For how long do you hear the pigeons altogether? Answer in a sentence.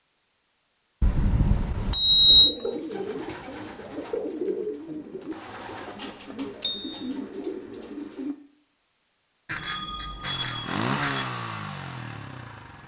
You can hear the pigeons for 6 seconds altogether.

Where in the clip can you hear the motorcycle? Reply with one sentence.
You can hear the motorcycle from 10.2 to 12.8 s.